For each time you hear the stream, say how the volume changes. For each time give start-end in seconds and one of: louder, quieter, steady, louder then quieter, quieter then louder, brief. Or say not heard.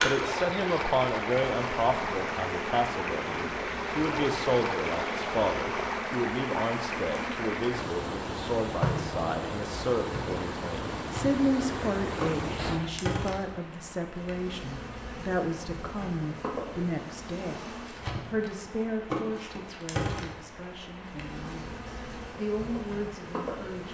0.0-23.8 quieter.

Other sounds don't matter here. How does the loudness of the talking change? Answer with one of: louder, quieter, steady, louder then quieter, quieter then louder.
quieter.